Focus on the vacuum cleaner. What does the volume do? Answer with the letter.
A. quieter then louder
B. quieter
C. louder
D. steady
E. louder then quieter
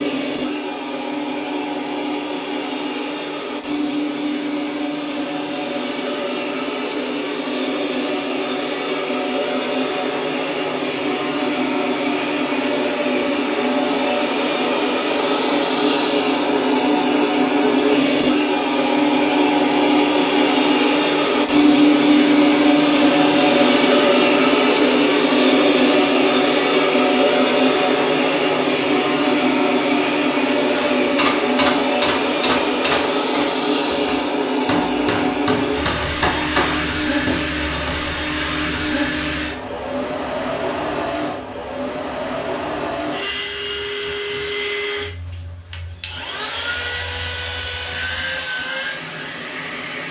E.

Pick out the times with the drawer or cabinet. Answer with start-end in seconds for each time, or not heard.
not heard.